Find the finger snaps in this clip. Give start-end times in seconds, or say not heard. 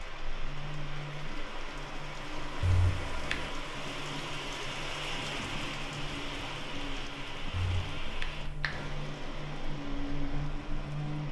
2.6-3.5, 7.5-8.9.